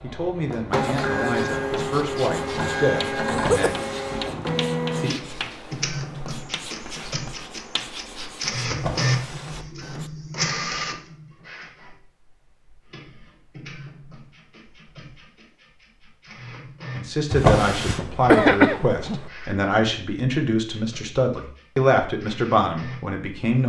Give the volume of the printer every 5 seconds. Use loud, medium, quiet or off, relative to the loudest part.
loud, loud, medium, quiet, quiet.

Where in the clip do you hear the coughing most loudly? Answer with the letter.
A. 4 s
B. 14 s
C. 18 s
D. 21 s
C.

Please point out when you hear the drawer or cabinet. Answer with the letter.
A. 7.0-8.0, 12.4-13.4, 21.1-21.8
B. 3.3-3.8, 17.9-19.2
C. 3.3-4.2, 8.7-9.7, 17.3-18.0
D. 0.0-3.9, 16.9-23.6
C.